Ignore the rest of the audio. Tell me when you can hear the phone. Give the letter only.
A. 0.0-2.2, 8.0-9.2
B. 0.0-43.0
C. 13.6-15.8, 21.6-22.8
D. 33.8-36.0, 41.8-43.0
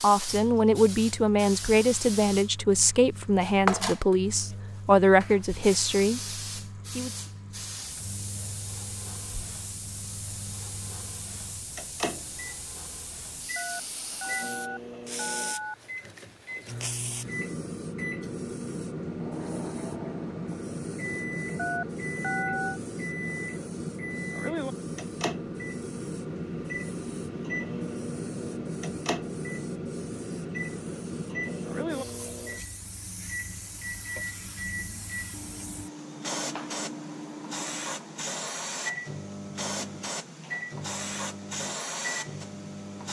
C.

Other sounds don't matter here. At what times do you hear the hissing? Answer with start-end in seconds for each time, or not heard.
0.0-43.0.